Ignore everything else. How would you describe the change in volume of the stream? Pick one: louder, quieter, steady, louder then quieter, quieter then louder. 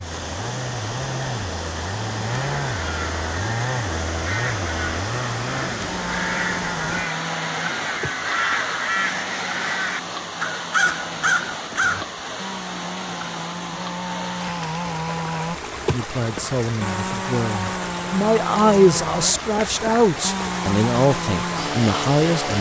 steady.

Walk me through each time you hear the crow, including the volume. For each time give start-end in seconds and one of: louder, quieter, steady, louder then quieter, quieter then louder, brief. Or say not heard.
2.3-12.1 louder.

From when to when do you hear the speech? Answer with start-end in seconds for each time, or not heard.
15.9-22.5.